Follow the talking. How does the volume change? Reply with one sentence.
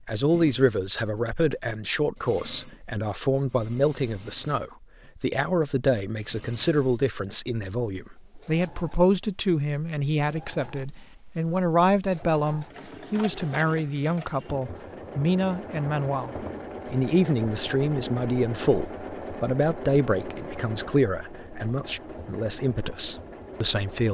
The volume of the talking stays about the same.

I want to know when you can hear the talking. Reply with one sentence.
The talking can be heard from 0.1 to 24.0 s.